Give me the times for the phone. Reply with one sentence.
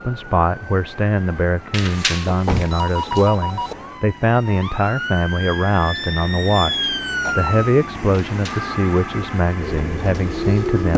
The phone can be heard from 1.7 to 3.8 s and from 8.1 to 8.8 s.